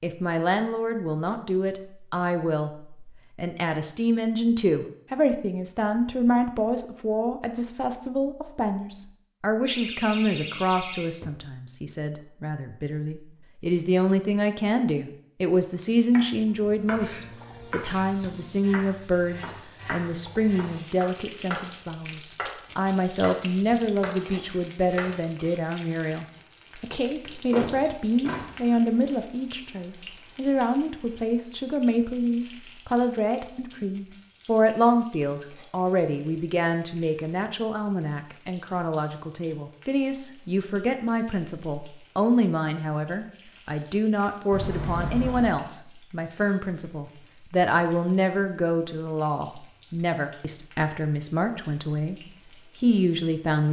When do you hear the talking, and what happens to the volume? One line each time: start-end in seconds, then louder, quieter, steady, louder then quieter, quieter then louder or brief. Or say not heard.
0.0-53.6 steady.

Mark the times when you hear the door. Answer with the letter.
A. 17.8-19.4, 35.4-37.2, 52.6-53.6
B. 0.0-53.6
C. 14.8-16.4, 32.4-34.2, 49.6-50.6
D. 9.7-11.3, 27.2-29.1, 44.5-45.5
D.